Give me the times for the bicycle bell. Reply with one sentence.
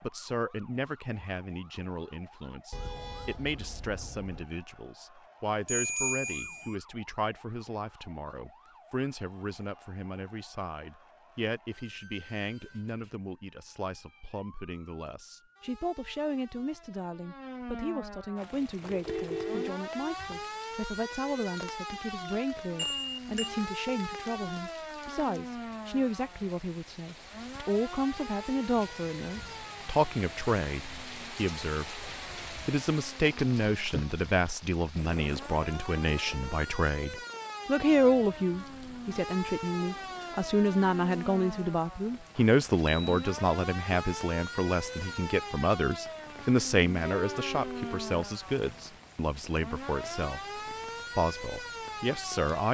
You can hear the bicycle bell from 5.7 to 6.8 s, from 22.8 to 23.5 s and from 42.4 to 43.3 s.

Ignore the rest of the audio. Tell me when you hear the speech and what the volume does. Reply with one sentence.
You can hear the speech from 0.0 to 52.6 s, getting louder.